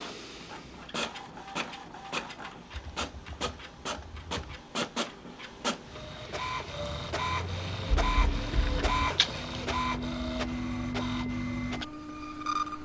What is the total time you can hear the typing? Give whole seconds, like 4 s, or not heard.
3 s.